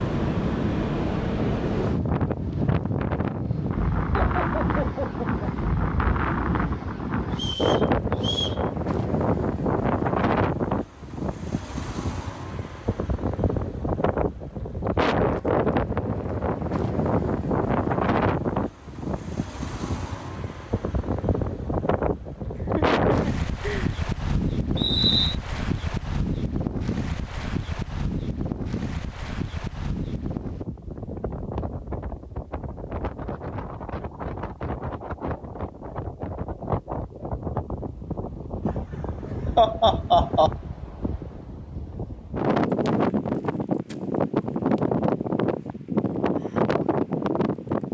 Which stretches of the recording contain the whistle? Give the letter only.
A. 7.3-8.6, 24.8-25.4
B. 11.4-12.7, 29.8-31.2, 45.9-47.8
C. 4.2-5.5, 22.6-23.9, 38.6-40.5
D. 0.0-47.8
A.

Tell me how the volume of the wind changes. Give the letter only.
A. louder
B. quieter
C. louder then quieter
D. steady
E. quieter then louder
E.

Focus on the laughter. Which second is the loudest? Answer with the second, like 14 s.
40 s.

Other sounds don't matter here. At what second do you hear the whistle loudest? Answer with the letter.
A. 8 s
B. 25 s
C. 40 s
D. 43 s
B.